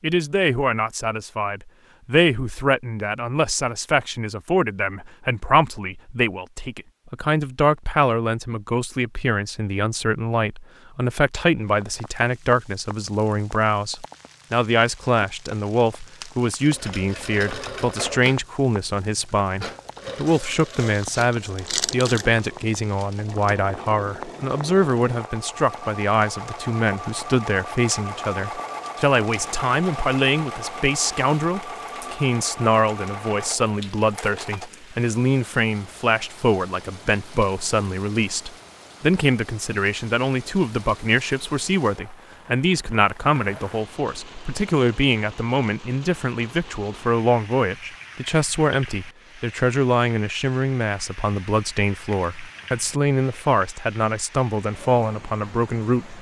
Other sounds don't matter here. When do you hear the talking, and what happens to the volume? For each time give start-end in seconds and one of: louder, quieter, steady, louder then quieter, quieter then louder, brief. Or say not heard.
0.0-56.1 steady.